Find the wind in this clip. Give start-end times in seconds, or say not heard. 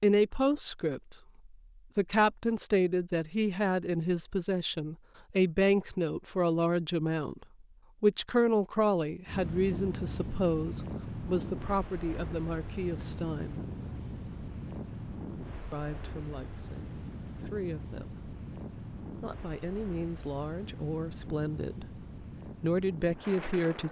9.2-23.8.